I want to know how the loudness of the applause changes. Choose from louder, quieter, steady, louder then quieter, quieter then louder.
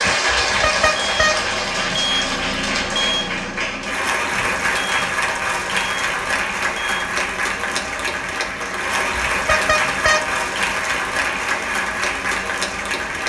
steady.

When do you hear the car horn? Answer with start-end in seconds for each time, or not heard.
0.3-1.4, 9.3-10.2.